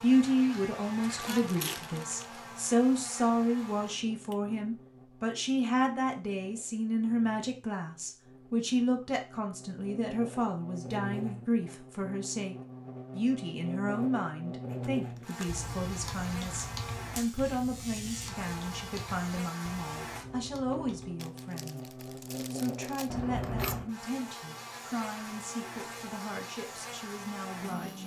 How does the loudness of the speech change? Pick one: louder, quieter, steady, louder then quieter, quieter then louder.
quieter.